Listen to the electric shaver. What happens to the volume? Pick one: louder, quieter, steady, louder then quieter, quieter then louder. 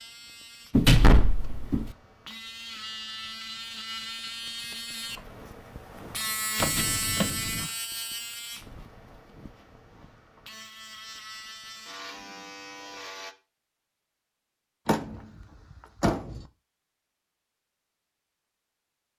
louder then quieter.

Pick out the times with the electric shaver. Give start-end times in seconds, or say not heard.
0.0-13.3.